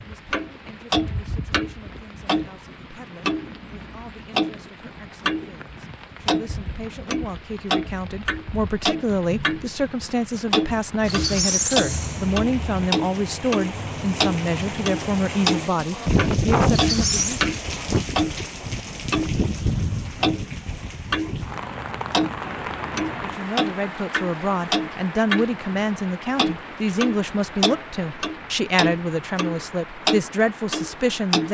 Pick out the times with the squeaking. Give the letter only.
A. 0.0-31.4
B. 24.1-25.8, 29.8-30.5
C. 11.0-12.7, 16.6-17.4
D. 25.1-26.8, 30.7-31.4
C.